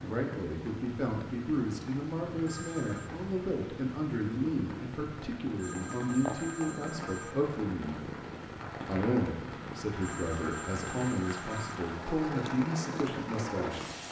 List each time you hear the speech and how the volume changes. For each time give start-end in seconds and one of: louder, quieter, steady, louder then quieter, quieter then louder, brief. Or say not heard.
0.0-8.1 steady
8.8-13.8 steady.